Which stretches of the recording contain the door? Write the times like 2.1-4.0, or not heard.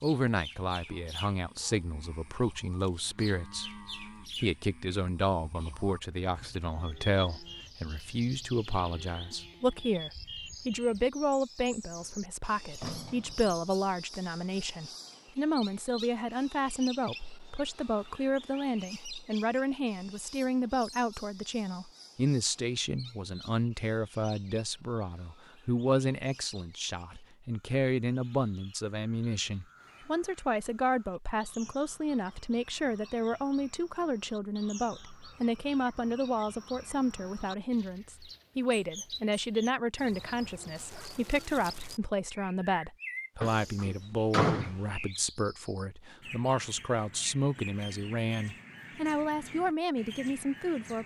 11.8-13.6, 43.4-44.8.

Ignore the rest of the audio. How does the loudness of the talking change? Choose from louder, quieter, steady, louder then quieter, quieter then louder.
steady.